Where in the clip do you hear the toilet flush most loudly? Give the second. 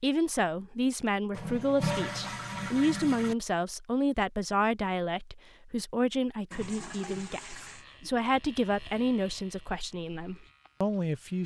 2 s.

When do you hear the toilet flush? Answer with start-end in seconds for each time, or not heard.
1.3-3.4, 6.5-7.8.